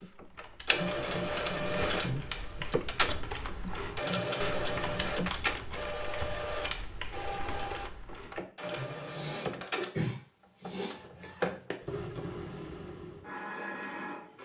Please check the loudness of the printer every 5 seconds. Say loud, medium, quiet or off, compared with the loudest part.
loud, loud, medium.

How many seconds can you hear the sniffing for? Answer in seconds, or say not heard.
2 s.